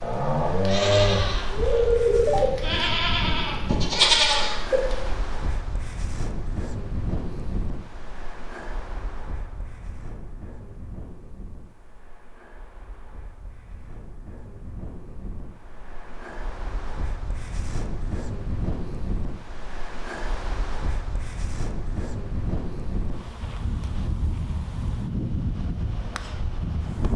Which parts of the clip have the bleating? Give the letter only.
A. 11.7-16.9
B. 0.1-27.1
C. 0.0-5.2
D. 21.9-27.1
C.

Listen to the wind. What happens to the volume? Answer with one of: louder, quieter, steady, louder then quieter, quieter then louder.
quieter then louder.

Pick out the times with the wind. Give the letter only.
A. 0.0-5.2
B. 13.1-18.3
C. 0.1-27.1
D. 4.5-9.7
C.